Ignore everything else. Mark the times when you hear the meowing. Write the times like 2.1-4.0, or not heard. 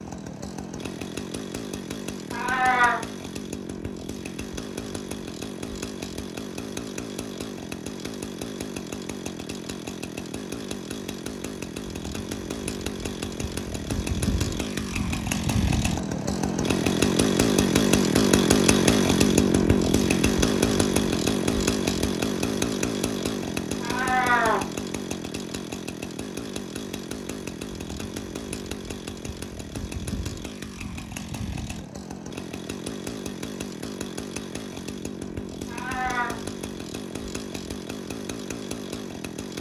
2.3-3.0, 23.8-24.6, 35.6-36.4.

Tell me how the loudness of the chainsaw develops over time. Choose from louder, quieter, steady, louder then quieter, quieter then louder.
louder then quieter.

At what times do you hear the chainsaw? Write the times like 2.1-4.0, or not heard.
0.0-39.5.